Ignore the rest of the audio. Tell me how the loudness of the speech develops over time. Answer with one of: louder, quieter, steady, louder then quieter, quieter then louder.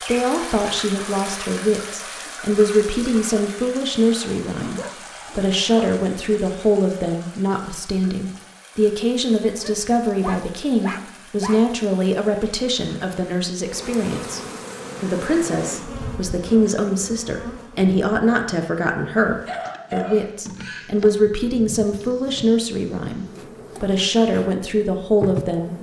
steady.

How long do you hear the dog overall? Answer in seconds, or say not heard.
5 s.